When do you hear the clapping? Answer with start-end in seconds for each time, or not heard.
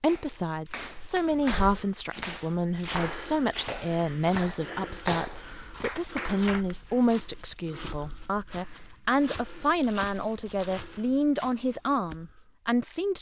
0.1-6.7.